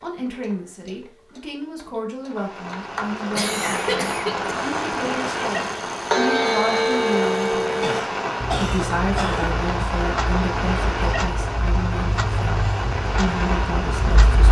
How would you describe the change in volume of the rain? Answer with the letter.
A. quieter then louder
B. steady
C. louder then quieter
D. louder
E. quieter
B.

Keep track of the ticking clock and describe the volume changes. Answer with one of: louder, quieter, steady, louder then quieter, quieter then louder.
louder then quieter.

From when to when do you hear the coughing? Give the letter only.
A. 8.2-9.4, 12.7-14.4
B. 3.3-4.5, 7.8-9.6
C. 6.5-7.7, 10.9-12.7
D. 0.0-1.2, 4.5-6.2
B.